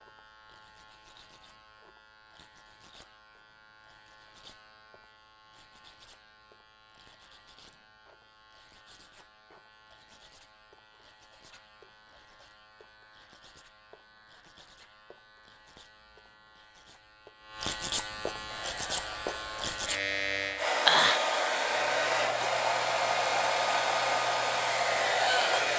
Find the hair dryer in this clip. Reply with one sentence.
The hair dryer can be heard from 18.4 to 25.7 s.